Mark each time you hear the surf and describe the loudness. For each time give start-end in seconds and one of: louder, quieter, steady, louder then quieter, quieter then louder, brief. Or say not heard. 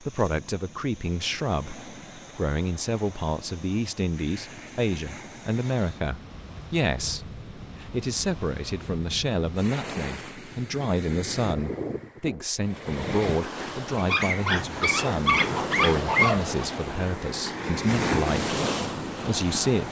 0.0-19.8 louder.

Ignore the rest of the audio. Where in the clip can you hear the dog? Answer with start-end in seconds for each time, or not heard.
13.9-16.6.